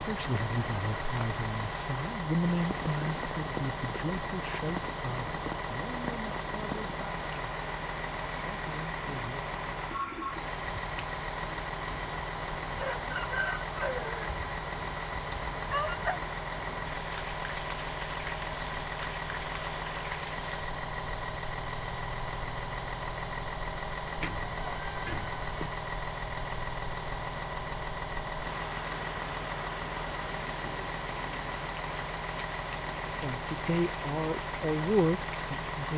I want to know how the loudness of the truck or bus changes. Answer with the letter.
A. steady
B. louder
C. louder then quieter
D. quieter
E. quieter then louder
A.